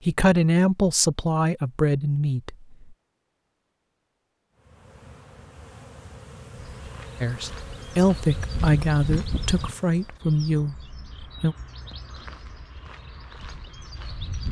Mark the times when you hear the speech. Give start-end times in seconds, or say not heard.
0.1-2.9, 7.2-11.6.